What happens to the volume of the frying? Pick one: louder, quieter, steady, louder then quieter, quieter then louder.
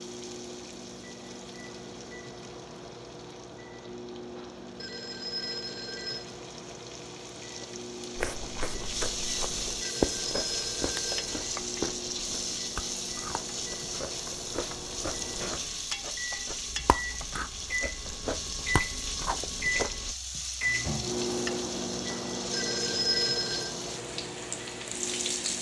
louder.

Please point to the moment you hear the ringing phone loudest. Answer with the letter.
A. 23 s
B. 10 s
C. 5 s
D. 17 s
A.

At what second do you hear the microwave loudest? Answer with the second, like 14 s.
21 s.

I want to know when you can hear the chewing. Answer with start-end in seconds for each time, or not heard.
8.2-20.1.